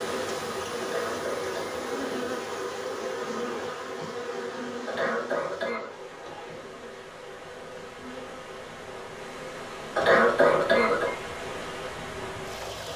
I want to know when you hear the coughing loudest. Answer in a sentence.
The loudest moment of the coughing is at 10 seconds.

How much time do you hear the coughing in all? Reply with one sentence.
The coughing can be heard for 3 seconds in total.